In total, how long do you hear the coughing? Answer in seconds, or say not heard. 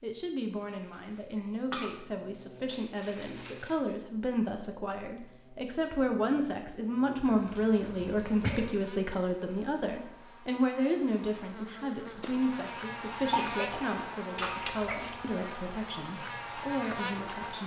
3 s.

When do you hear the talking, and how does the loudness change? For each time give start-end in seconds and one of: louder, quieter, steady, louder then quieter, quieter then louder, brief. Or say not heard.
0.0-17.6 louder then quieter.